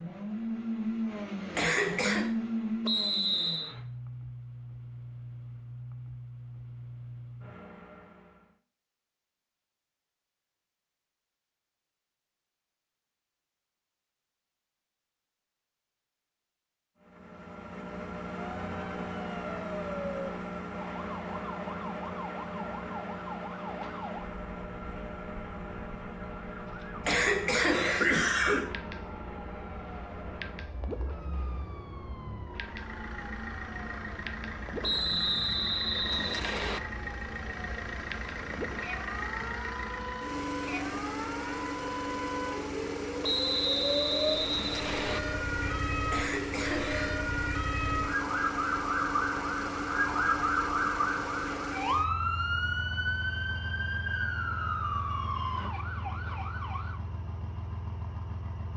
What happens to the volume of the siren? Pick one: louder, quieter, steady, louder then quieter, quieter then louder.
louder.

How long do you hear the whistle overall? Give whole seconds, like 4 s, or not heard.
5 s.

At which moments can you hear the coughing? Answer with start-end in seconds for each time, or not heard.
1.6-2.3, 27.0-28.7, 46.1-47.1.